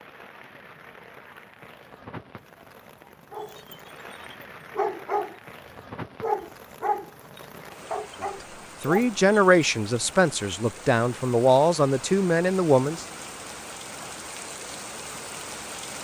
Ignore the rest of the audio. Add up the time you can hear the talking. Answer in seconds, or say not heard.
5 s.